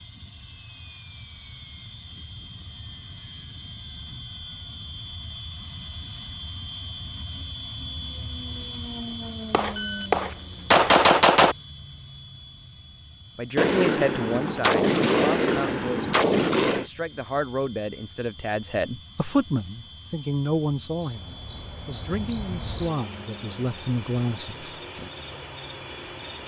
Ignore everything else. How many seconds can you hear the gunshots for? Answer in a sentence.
You can hear the gunshots for 5 seconds altogether.